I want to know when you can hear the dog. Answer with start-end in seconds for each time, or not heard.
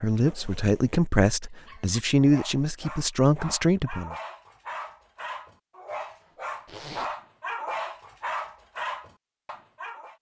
1.5-10.1.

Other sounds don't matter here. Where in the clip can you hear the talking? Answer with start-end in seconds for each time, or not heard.
0.0-4.2.